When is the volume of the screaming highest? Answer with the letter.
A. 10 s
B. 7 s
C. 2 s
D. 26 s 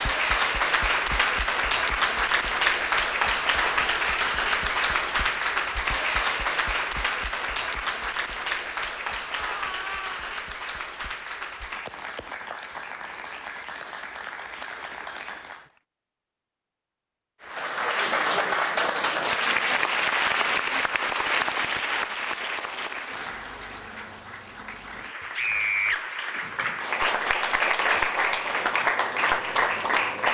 D.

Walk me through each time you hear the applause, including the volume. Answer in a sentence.
You can hear the applause from 0.0 to 15.7 s, getting quieter; and from 17.4 to 30.2 s, getting quieter then louder.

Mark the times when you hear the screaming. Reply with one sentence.
You can hear the screaming from 9.3 to 10.2 s and from 25.4 to 26.0 s.